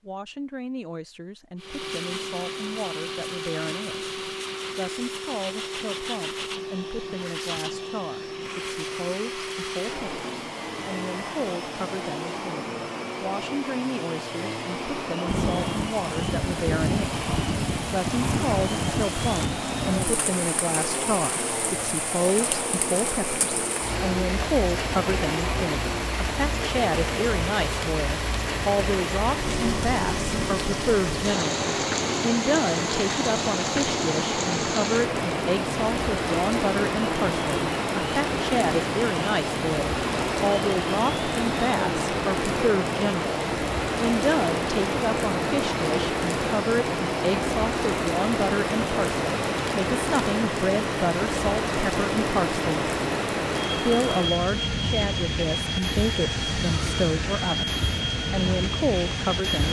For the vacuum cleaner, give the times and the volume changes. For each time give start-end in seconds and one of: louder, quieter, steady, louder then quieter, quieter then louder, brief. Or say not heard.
1.6-59.6 steady.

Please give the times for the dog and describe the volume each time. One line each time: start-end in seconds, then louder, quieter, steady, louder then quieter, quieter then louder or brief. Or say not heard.
not heard.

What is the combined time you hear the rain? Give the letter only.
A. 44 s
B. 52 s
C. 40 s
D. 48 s
A.